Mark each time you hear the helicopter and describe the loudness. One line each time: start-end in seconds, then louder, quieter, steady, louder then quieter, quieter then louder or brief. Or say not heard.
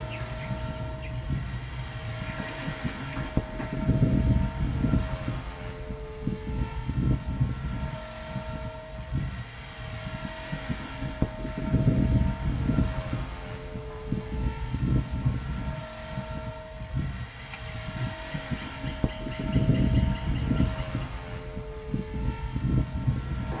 0.0-23.5 steady.